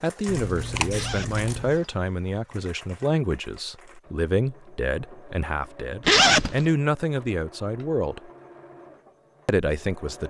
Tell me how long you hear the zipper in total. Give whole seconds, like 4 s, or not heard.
2 s.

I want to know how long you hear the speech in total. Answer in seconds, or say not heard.
9 s.